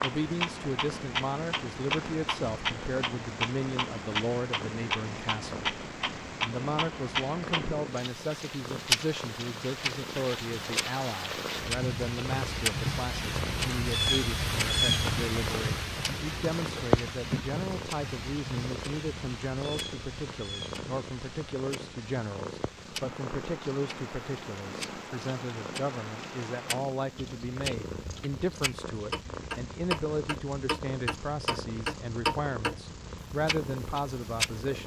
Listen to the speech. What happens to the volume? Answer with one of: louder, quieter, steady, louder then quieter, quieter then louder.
steady.